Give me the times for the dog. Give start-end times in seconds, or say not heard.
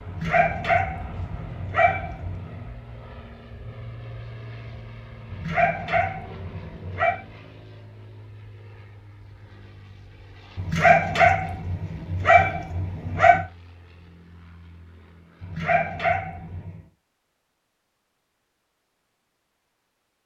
0.1-2.6, 5.3-7.2, 10.6-13.4, 15.4-16.8.